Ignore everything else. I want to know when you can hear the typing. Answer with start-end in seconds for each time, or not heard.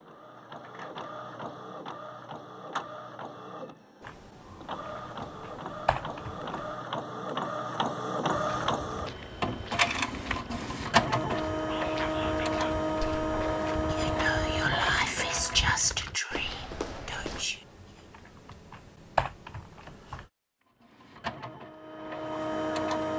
4.0-6.8, 17.3-20.3.